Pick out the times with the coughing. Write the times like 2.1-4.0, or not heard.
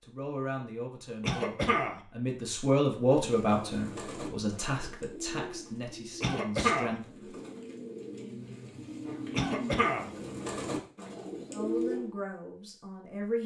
1.2-2.0, 6.2-7.0, 9.3-10.1.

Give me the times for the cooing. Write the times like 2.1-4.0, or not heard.
3.1-12.1.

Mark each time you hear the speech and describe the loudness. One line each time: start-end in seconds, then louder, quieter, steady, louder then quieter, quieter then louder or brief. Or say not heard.
0.0-7.0 louder then quieter
11.5-13.4 brief.